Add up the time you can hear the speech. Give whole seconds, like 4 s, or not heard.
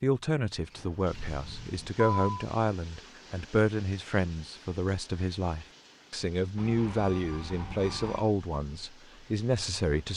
10 s.